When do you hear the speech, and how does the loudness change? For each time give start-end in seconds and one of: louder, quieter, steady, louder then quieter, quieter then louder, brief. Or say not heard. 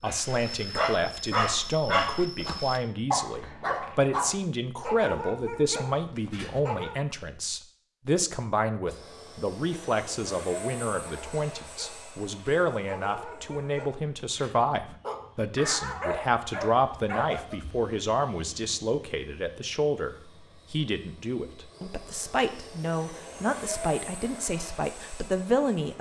0.0-25.9 steady.